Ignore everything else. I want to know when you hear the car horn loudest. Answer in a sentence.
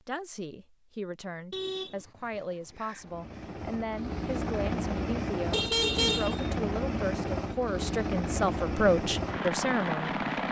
The volume of the car horn peaks at 6 seconds.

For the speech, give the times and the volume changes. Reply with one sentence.
You can hear the speech from 0.1 to 10.2 s, getting louder.